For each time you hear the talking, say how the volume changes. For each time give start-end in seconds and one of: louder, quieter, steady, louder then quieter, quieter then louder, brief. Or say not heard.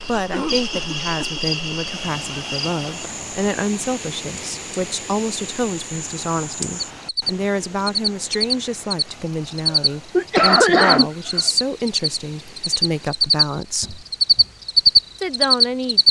0.0-14.1 steady
15.2-16.0 brief.